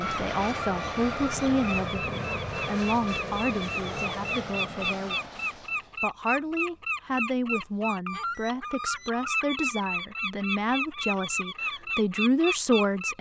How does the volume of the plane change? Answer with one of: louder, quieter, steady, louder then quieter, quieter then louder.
quieter.